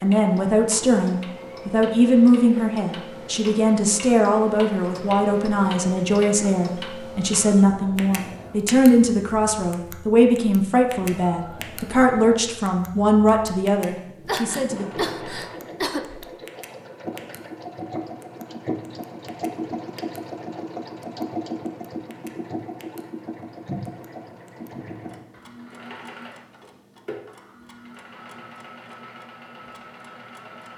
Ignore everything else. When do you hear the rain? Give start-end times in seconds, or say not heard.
not heard.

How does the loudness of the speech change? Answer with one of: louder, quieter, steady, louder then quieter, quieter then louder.
steady.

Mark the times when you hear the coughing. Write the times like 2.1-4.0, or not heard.
14.2-16.2.